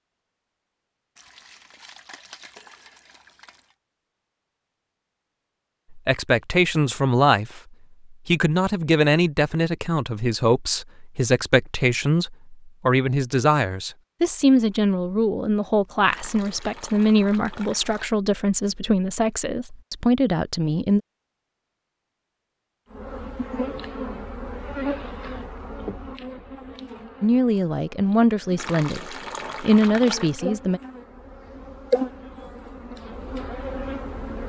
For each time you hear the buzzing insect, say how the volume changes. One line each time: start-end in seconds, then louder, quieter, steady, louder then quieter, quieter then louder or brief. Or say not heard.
22.9-34.4 quieter then louder.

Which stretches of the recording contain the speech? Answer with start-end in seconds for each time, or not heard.
5.9-21.0, 27.2-30.8.